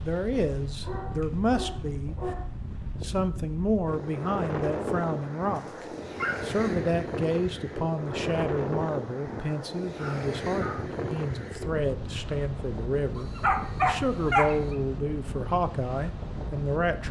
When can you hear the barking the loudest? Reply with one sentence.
The loudest moment of the barking is at 14 seconds.